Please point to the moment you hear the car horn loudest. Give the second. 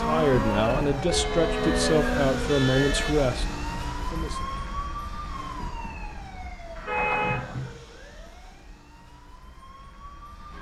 7 s.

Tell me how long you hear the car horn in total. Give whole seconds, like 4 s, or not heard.
3 s.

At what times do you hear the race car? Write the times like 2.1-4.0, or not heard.
0.0-2.6.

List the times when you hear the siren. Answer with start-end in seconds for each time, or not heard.
0.0-10.5.